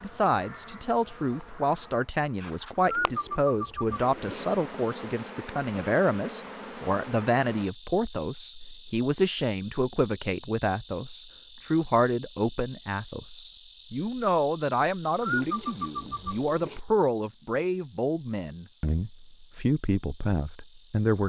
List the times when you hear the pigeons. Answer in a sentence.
You can hear the pigeons from 2.9 to 4.5 s and from 15.2 to 16.8 s.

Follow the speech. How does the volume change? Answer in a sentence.
The volume of the speech stays about the same.